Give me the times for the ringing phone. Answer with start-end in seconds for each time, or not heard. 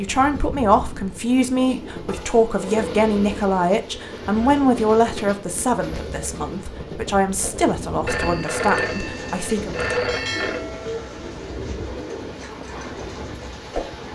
8.1-10.7.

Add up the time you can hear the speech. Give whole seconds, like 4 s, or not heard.
10 s.